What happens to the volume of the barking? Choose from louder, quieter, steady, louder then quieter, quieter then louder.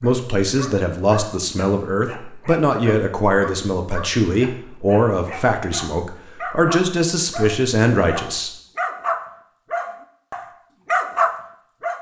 louder.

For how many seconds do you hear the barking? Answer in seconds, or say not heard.
12 s.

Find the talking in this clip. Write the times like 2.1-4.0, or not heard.
0.0-8.5.